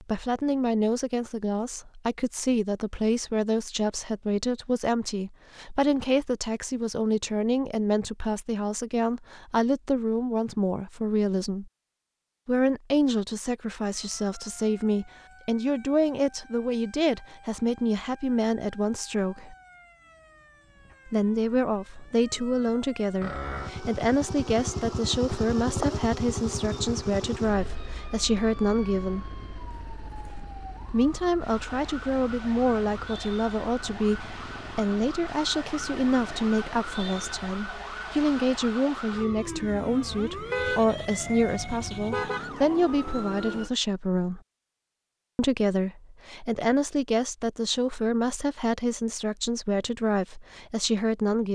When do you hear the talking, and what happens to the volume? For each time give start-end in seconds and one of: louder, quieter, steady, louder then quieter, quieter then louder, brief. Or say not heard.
0.0-11.7 steady
12.4-19.6 steady
21.1-29.3 steady
30.9-44.4 steady
45.4-51.5 steady.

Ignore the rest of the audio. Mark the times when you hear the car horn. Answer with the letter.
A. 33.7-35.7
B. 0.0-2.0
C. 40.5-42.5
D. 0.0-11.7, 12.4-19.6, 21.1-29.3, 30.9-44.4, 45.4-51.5
C.